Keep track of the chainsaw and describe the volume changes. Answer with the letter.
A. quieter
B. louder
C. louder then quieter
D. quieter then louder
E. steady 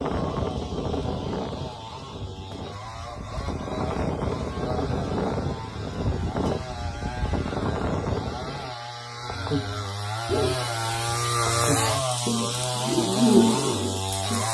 B.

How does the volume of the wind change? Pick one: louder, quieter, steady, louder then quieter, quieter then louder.
quieter then louder.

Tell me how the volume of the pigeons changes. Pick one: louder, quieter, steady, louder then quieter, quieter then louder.
quieter then louder.